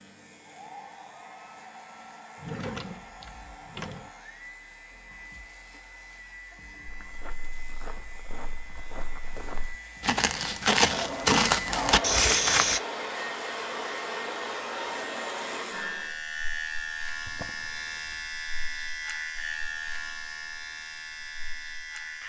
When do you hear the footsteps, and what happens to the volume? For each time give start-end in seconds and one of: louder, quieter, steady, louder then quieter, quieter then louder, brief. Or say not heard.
6.8-12.8 louder.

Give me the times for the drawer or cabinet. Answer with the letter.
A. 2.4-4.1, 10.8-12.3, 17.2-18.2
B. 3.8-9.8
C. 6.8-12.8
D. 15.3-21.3
A.